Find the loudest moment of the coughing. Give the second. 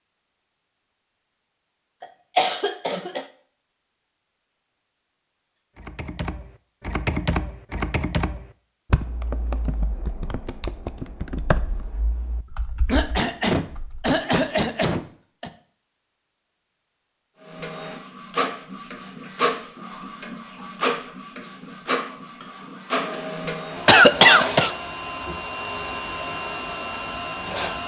24 s.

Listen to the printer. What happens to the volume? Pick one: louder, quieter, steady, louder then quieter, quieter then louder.
steady.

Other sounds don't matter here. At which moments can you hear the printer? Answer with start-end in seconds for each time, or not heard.
17.4-27.8.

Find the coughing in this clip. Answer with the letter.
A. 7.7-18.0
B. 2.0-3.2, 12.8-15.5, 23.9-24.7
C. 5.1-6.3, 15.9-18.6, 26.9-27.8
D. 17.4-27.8
B.